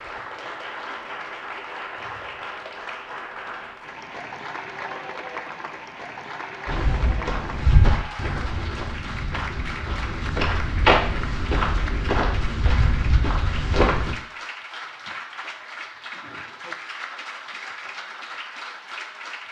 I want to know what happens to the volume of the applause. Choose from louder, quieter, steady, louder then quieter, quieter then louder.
steady.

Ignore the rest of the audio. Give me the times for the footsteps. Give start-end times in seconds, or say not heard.
6.7-14.2.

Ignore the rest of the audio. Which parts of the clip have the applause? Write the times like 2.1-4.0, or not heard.
0.0-19.4.